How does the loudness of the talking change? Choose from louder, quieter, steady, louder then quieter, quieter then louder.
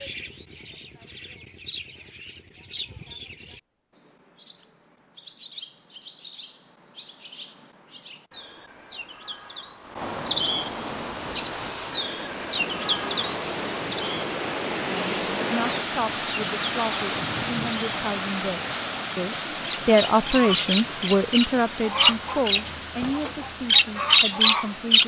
louder then quieter.